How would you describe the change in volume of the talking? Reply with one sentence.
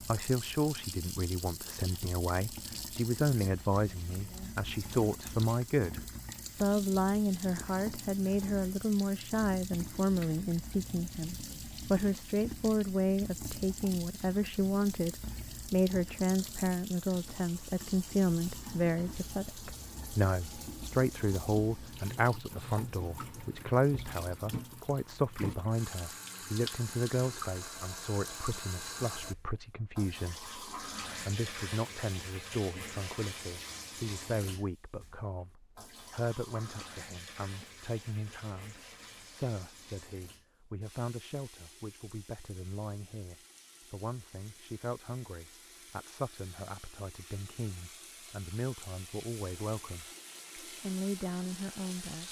The loudness of the talking goes down.